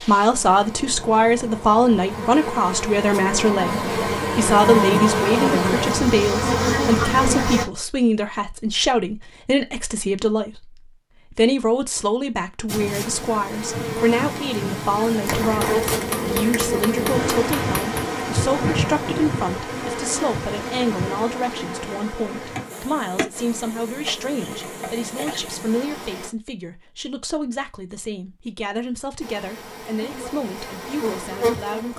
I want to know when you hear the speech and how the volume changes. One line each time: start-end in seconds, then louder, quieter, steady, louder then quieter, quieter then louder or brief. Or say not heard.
0.1-31.9 quieter.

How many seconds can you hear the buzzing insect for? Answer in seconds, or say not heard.
24 s.